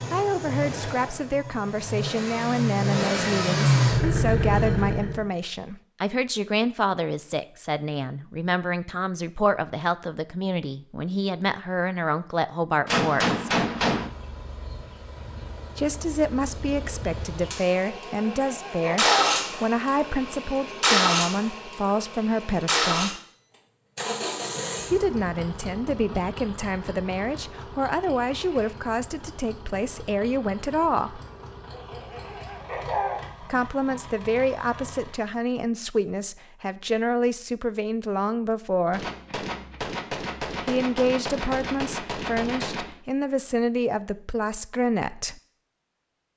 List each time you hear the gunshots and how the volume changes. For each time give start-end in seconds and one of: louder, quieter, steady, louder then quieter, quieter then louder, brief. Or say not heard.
12.8-14.1 brief
38.9-43.0 steady.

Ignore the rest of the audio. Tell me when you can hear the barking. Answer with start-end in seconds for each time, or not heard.
17.9-19.4, 31.7-33.2.